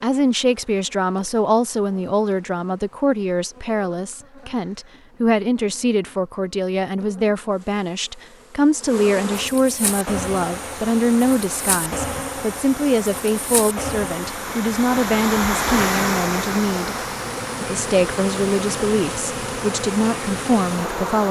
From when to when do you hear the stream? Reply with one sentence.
The stream can be heard from 9.8 to 21.2 s.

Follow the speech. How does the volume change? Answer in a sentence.
The loudness of the speech stays about the same.